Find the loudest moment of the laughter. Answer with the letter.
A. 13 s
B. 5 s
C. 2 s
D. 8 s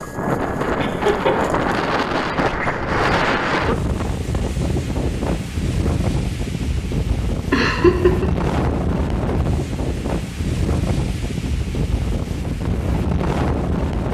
D.